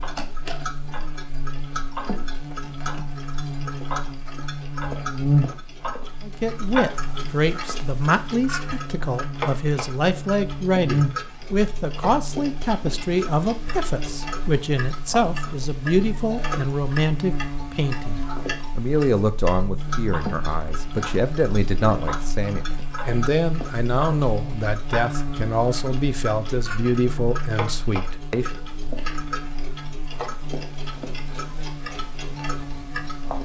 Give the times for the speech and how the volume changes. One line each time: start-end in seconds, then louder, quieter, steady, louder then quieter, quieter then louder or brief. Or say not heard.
6.2-28.5 steady.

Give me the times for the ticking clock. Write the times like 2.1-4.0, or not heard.
0.0-33.4.